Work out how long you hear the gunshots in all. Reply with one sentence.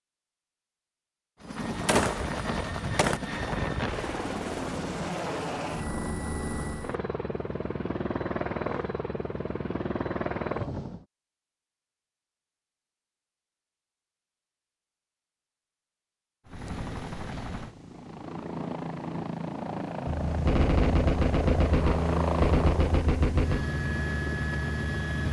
You can hear the gunshots for 5 seconds altogether.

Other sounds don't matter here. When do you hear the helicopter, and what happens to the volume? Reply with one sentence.
You can hear the helicopter from 1.4 to 11.1 s, at a steady volume; and from 16.4 to 25.2 s, getting louder.